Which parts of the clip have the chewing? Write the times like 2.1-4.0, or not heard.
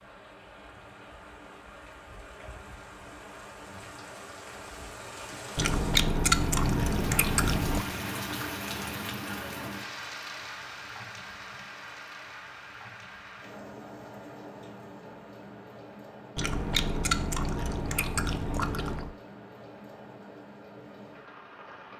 5.5-7.8, 16.4-19.1.